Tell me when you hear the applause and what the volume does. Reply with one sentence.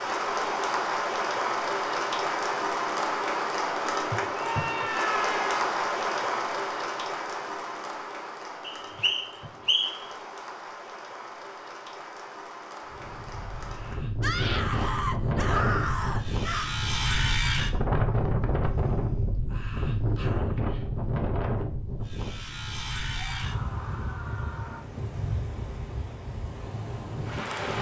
You can hear the applause from 0.0 to 14.0 s, getting quieter.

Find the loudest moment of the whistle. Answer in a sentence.
The loudest moment of the whistle is at 10 seconds.